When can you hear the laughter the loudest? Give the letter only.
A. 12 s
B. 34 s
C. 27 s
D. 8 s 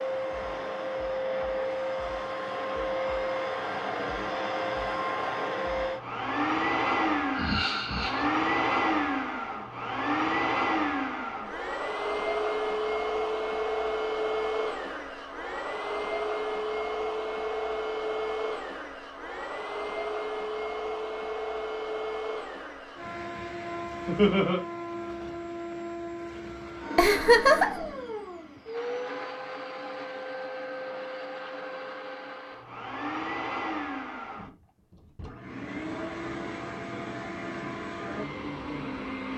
C.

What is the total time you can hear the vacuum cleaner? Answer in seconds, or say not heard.
39 s.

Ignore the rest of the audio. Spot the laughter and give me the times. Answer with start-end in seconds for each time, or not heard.
7.3-8.2, 24.1-24.6, 26.9-27.9.